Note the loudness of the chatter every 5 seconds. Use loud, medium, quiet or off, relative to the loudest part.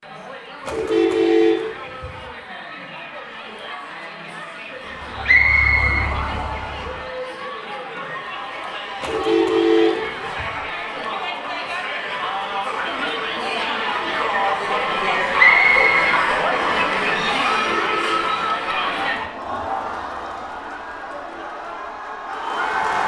quiet, medium, loud, loud, medium.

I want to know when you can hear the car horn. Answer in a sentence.
The car horn can be heard from 0.7 to 2.2 s, from 9.0 to 10.6 s and from 17.4 to 18.2 s.